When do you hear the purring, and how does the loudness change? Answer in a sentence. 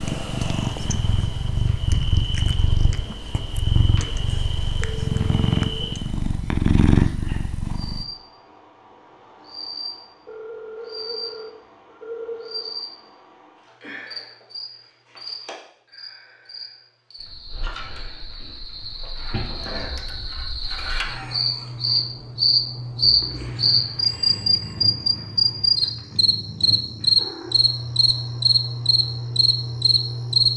The purring can be heard from 0.0 to 8.1 s, getting louder; and from 23.0 to 30.5 s, getting louder.